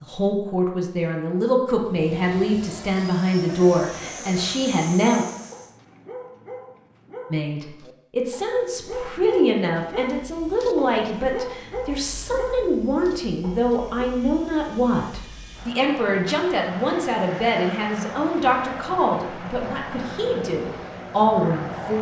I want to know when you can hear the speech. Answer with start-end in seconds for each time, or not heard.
0.0-5.2, 7.3-21.9.